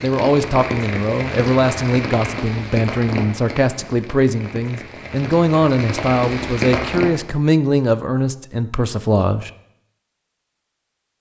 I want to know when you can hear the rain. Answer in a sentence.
The rain can be heard from 0.0 to 7.2 s.